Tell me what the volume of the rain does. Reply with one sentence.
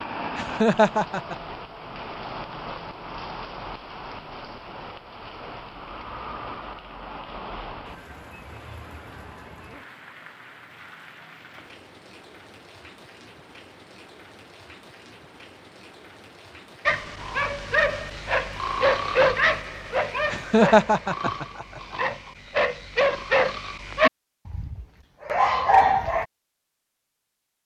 The volume of the rain goes down.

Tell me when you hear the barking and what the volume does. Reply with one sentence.
You can hear the barking from 16.9 to 26.2 s, getting quieter then louder.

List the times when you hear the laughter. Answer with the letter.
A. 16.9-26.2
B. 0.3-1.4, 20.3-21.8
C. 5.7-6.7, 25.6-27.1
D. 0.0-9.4
B.